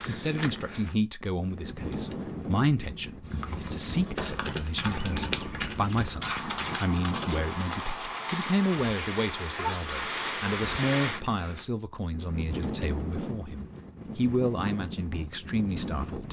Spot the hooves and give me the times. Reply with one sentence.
You can hear the hooves from 3.2 to 10.2 s.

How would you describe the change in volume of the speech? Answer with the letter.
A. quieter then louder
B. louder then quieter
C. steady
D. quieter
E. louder
C.